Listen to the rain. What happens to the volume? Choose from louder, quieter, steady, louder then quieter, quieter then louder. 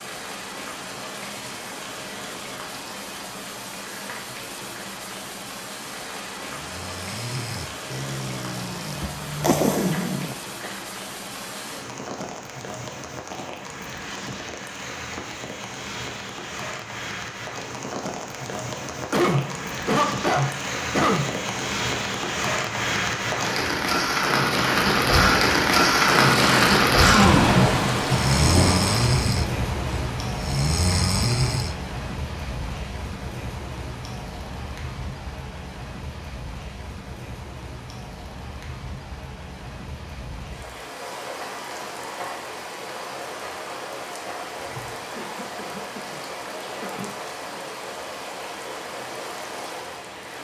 louder then quieter.